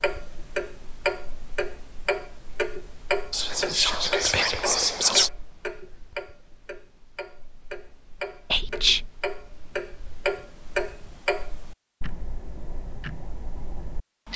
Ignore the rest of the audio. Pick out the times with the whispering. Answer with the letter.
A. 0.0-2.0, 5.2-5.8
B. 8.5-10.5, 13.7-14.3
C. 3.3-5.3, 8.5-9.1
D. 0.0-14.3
C.